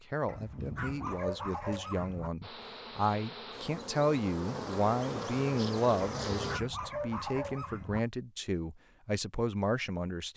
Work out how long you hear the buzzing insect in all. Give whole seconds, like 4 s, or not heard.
4 s.